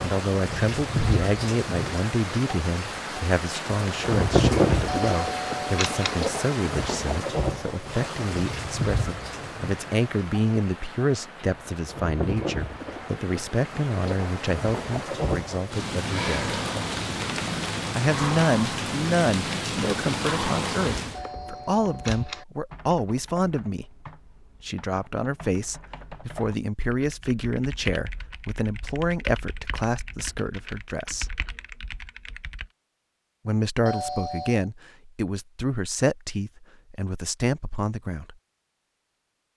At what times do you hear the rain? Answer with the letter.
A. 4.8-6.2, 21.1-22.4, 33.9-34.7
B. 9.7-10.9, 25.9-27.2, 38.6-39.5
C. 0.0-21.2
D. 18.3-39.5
C.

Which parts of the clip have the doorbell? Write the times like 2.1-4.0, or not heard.
4.8-6.2, 21.1-22.4, 33.9-34.7.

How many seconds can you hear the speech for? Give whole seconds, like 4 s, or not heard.
35 s.